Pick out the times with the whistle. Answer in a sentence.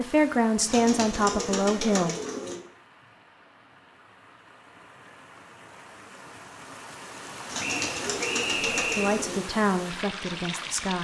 You can hear the whistle from 7.6 to 9.2 s.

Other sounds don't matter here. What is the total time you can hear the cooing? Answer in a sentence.
The cooing can be heard for 4 seconds in total.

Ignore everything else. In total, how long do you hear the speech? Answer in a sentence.
You can hear the speech for 4 seconds altogether.